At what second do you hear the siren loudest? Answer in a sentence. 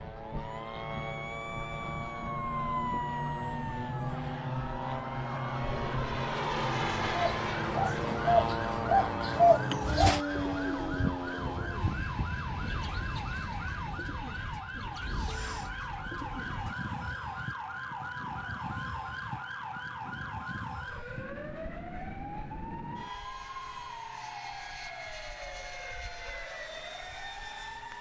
The loudest moment of the siren is at 3 seconds.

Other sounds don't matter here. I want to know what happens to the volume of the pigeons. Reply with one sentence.
The volume of the pigeons goes down.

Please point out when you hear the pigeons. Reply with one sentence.
The pigeons can be heard from 7.1 to 17.1 s.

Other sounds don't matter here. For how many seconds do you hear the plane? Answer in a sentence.
You can hear the plane for 28 seconds altogether.